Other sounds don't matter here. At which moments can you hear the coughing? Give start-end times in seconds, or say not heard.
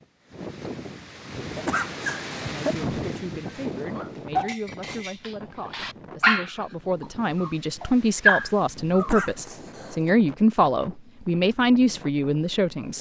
1.6-2.9, 8.9-10.2.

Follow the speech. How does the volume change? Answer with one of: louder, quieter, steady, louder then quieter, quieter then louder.
louder.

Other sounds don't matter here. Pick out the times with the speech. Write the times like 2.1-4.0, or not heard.
2.5-12.9.